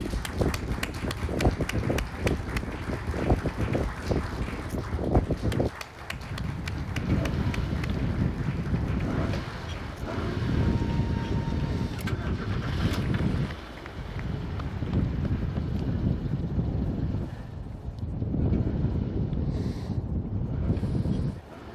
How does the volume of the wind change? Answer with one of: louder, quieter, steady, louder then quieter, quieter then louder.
steady.